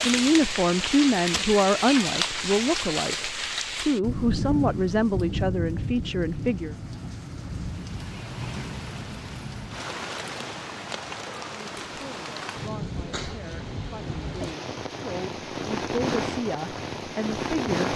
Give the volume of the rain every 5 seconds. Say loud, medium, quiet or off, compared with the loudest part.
loud, medium, medium, loud.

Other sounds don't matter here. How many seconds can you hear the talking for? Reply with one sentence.
You can hear the talking for 13 seconds altogether.